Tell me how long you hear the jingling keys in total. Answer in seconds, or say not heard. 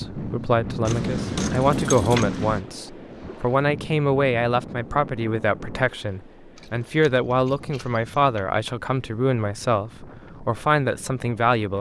4 s.